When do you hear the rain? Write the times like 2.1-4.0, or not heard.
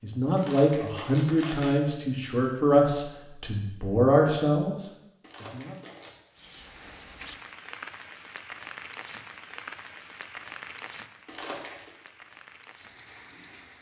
6.3-13.7.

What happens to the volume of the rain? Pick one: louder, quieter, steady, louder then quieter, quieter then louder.
quieter.